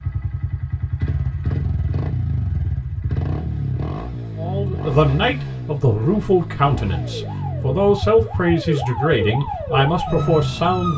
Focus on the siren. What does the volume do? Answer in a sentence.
The volume of the siren goes up.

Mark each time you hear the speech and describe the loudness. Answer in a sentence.
You can hear the speech from 4.3 to 10.9 s, at a steady volume.